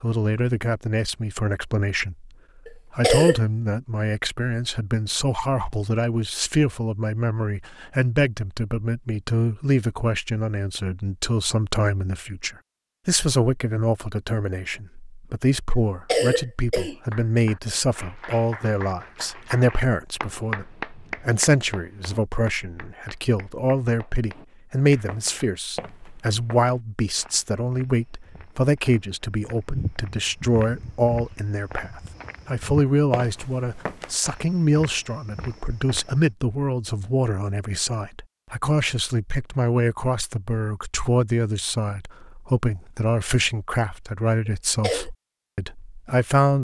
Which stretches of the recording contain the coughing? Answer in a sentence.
You can hear the coughing from 2.6 to 3.4 s, from 15.7 to 16.9 s and from 44.5 to 45.1 s.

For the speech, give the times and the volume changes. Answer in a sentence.
You can hear the speech from 0.0 to 46.5 s, at a steady volume.